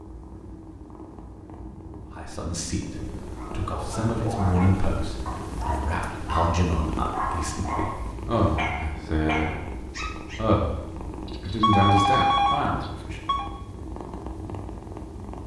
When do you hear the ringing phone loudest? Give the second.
12 s.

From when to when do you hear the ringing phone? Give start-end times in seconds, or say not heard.
11.2-13.5.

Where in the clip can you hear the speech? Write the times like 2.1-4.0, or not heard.
2.1-13.2.